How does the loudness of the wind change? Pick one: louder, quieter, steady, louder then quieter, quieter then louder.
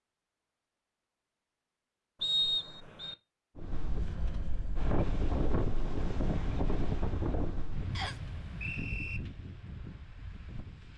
quieter.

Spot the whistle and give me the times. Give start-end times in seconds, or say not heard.
2.2-3.1, 8.0-9.2.